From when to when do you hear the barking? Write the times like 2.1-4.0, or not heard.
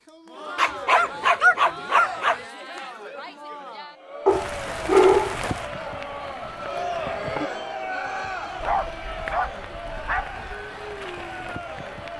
0.6-2.4, 4.2-5.3, 8.6-10.4.